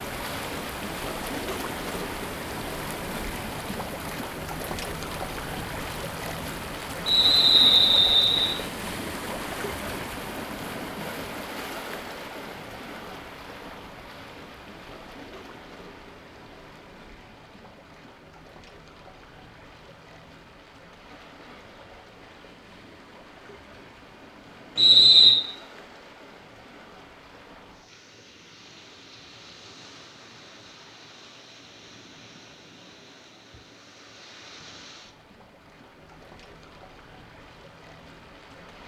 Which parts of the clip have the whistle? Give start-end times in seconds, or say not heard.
7.0-8.6, 24.8-25.4.